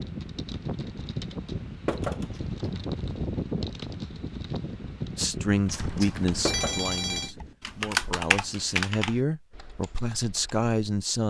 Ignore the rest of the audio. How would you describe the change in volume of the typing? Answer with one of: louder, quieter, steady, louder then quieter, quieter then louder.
louder.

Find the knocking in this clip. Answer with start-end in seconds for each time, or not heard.
1.9-2.3, 6.5-6.9.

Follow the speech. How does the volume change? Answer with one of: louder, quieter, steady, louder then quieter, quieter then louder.
quieter then louder.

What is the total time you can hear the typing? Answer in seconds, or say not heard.
11 s.